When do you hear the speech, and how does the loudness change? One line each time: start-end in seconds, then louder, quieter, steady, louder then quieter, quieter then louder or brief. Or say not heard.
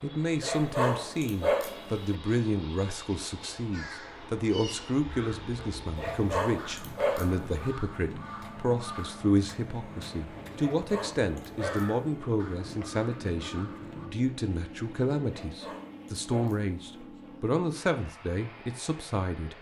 0.0-19.5 steady.